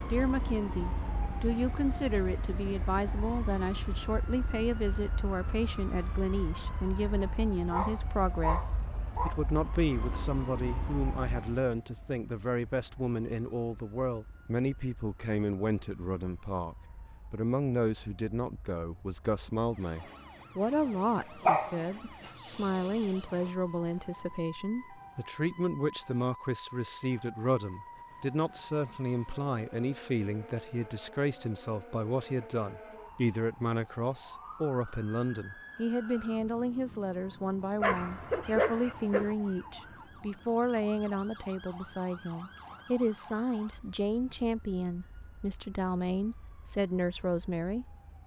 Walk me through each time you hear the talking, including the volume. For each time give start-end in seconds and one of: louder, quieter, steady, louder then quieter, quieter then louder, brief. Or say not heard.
0.1-48.0 steady.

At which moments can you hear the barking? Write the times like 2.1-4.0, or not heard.
7.2-9.3, 21.4-23.1, 37.8-39.4.